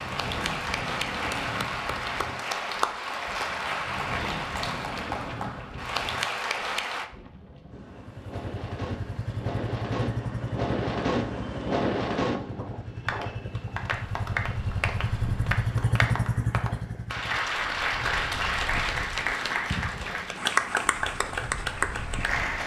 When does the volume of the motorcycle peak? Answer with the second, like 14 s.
16 s.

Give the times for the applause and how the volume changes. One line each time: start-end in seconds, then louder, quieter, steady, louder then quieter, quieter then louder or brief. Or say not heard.
0.0-7.1 steady
13.1-22.6 louder.